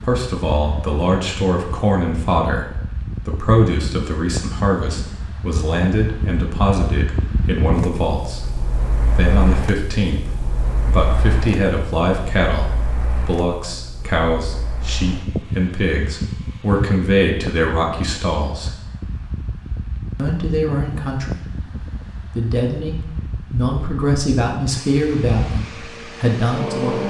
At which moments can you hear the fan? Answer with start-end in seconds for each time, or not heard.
0.0-27.0.